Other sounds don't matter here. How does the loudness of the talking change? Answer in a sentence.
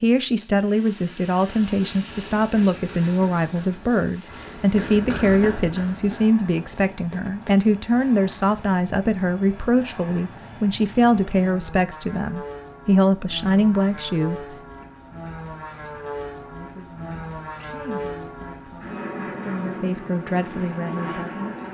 The loudness of the talking goes down.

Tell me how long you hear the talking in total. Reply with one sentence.
The talking can be heard for 20 seconds in total.